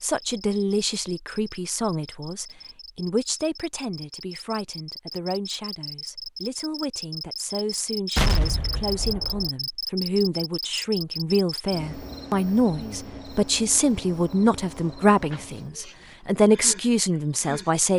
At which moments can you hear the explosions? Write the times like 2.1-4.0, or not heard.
8.2-9.5.